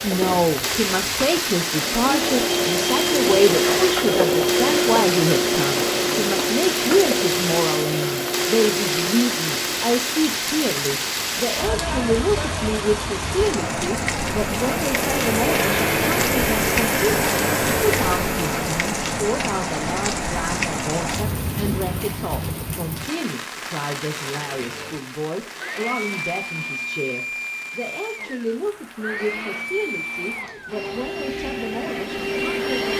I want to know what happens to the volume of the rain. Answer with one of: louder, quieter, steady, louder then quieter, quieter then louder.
quieter.